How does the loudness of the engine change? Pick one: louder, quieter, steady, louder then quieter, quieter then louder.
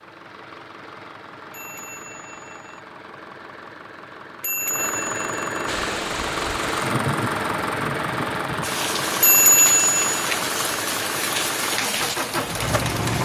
louder.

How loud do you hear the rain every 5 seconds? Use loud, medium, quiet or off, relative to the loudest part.
off, loud, loud.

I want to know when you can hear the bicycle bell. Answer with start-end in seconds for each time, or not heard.
1.5-2.8, 4.4-5.7, 9.2-10.1.